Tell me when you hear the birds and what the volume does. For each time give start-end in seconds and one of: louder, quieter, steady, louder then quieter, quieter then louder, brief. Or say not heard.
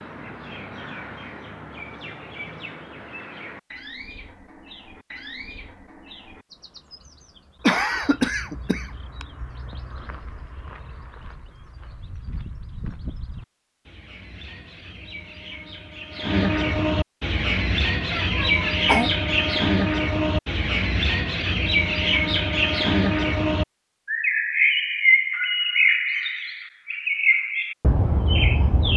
0.0-28.9 quieter then louder.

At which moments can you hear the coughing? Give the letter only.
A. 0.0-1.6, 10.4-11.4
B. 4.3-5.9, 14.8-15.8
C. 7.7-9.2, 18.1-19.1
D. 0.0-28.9
C.